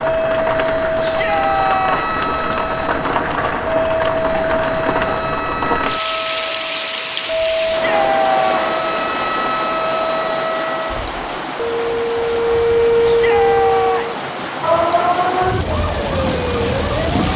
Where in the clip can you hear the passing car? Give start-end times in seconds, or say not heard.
not heard.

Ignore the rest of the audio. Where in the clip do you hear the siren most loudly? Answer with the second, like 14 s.
13 s.